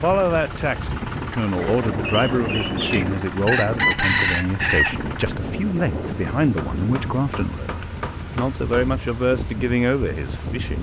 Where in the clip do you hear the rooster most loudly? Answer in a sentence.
The loudest moment of the rooster is at 4 seconds.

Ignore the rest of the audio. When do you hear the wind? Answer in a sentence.
The wind can be heard from 0.0 to 10.7 s.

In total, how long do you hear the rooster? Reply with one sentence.
You can hear the rooster for 3 seconds altogether.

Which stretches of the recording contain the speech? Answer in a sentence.
The speech can be heard from 0.0 to 10.7 s.